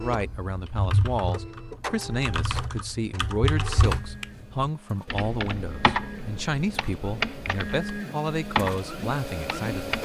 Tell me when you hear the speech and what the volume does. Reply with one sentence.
You can hear the speech from 0.0 to 9.9 s, at a steady volume.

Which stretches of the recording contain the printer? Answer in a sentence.
The printer can be heard from 0.0 to 9.9 s.